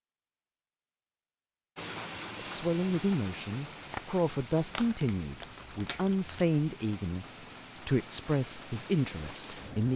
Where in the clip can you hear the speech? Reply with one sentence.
The speech can be heard from 2.4 to 9.9 s.